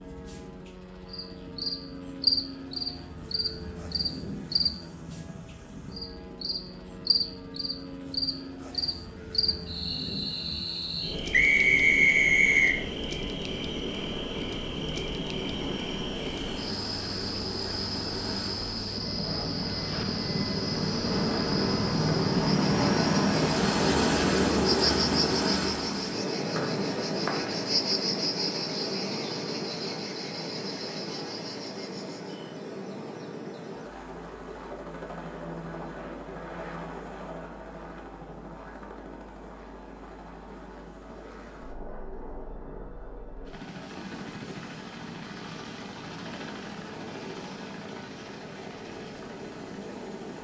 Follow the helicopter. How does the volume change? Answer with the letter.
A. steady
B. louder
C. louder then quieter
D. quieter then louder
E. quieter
C.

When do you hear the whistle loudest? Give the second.
12 s.